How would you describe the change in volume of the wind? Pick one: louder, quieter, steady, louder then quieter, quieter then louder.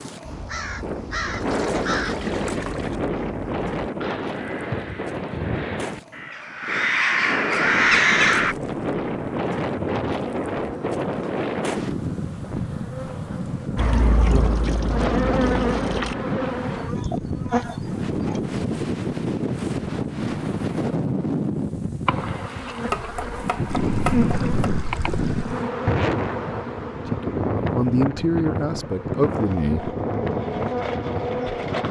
steady.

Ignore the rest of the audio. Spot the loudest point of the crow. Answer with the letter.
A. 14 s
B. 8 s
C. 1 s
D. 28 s
B.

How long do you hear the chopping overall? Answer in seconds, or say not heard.
2 s.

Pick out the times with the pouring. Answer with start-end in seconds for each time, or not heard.
1.3-3.0, 13.8-16.1, 23.6-25.4.